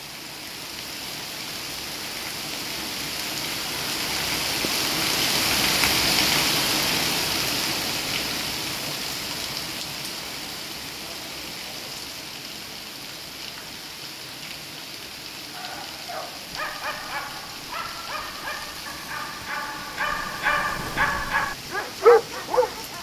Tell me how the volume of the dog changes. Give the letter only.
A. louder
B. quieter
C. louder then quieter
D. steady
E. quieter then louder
A.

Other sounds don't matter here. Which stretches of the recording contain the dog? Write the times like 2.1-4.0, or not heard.
15.5-22.9.